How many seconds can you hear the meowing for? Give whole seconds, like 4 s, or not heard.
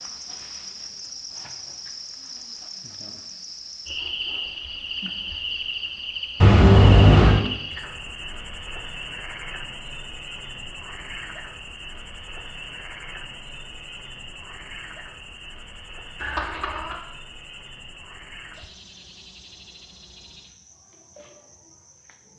2 s.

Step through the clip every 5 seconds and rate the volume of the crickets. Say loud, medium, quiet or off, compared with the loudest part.
loud, loud, medium, medium, quiet.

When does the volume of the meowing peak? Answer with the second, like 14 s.
7 s.